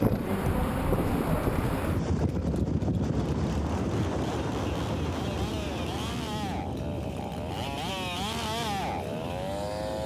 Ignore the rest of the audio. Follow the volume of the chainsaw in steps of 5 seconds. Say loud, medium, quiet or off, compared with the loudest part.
medium, loud.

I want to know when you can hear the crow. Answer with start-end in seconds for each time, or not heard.
not heard.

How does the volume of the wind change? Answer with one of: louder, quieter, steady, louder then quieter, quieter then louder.
quieter.